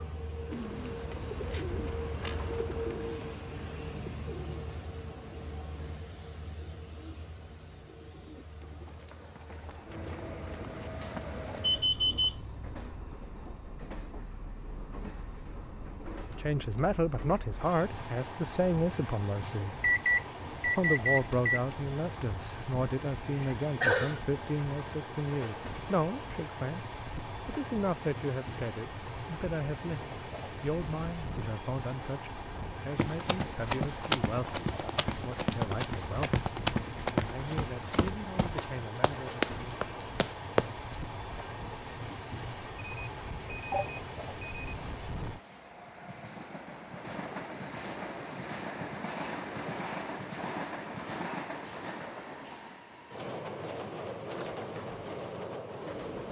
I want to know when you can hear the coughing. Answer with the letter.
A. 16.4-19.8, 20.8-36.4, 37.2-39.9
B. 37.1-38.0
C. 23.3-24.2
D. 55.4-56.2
C.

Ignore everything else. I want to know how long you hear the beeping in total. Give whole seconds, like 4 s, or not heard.
5 s.